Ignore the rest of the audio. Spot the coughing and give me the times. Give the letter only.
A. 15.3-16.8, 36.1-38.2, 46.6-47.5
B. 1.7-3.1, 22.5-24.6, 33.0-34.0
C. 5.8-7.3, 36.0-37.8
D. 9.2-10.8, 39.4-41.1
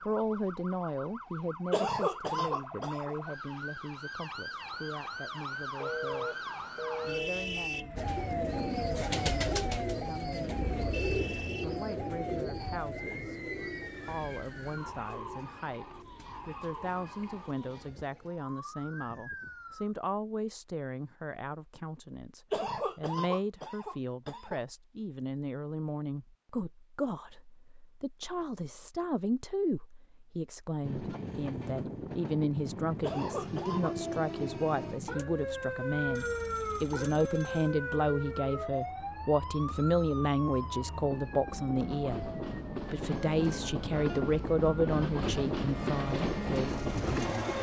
B.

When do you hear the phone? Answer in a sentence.
The phone can be heard from 5.8 to 7.3 s and from 36.0 to 37.8 s.